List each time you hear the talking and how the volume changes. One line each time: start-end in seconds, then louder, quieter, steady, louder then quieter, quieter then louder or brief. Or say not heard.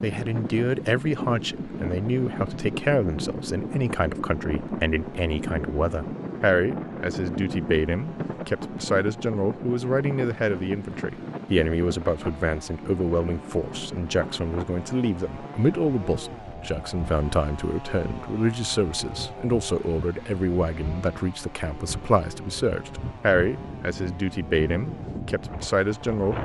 0.0-26.4 steady.